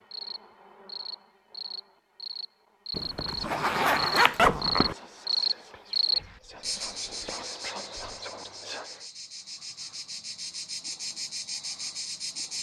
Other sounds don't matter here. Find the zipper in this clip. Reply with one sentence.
The zipper can be heard from 2.9 to 5.0 s.